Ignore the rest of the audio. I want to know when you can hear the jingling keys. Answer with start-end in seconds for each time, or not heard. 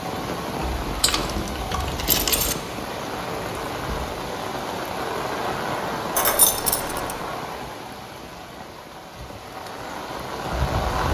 0.8-2.5, 6.2-7.2.